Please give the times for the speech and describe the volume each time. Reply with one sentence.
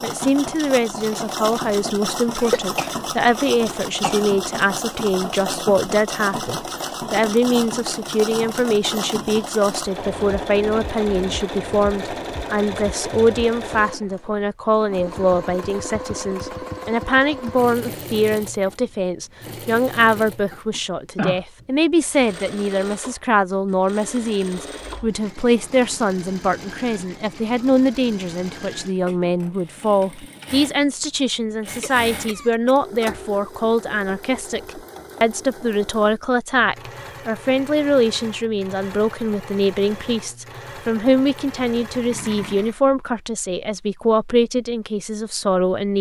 You can hear the speech from 0.0 to 45.9 s, at a steady volume.